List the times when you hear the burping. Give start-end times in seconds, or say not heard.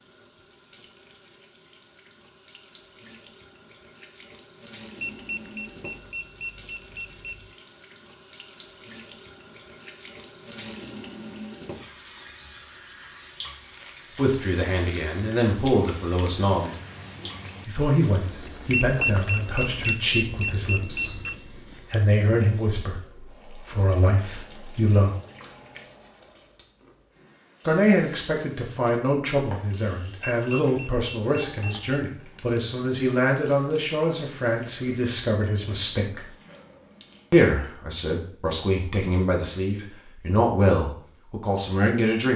36.5-37.0.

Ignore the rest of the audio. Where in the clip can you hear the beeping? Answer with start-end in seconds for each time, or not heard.
5.0-7.5, 18.7-21.4, 30.2-31.9.